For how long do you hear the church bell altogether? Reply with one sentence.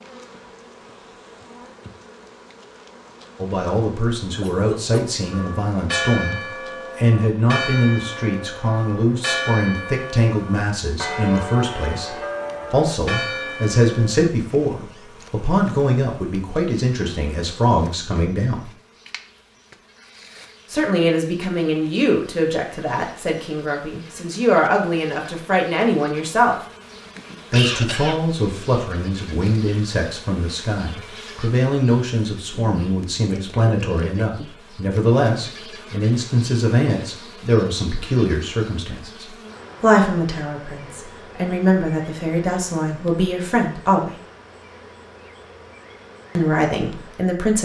The church bell can be heard for 9 seconds in total.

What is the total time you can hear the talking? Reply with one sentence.
You can hear the talking for 39 seconds altogether.